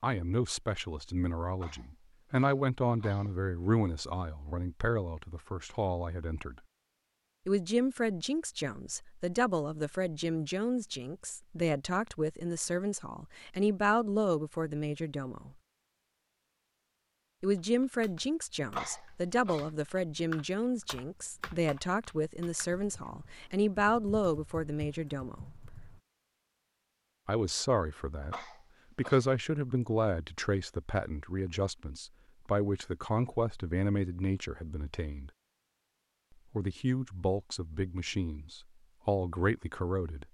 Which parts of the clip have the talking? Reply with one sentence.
The talking can be heard from 0.0 to 6.5 s, from 7.5 to 15.5 s, from 17.4 to 25.5 s, from 27.2 to 35.3 s and from 36.5 to 40.2 s.